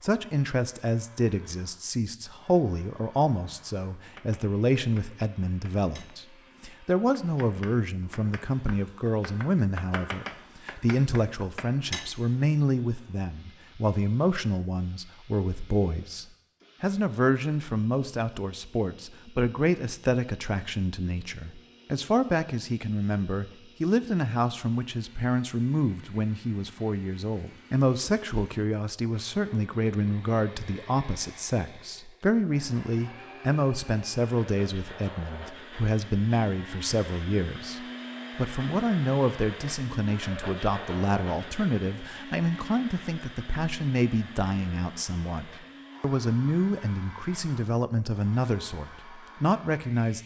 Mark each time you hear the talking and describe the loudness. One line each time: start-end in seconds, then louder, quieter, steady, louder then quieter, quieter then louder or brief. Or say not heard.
0.0-50.2 steady.